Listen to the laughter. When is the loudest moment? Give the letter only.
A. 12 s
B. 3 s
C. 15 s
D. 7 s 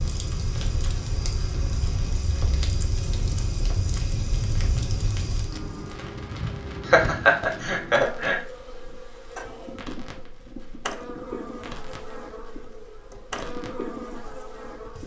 D.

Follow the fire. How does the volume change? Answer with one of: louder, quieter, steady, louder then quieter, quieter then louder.
quieter.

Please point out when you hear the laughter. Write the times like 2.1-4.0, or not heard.
6.8-8.4.